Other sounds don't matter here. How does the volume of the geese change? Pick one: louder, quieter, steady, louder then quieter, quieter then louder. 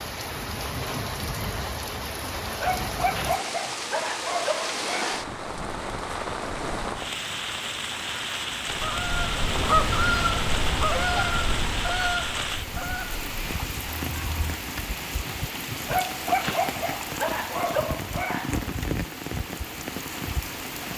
quieter.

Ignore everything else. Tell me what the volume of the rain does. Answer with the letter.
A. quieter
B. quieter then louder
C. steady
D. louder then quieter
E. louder
C.